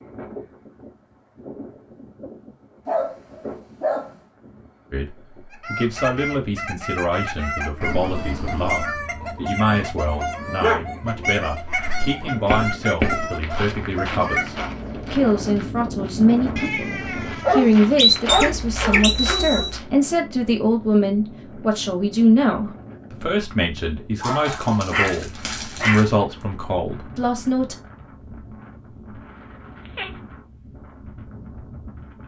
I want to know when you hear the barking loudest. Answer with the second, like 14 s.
18 s.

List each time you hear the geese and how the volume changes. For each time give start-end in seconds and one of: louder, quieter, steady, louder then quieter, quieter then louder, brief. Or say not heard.
5.5-14.7 steady.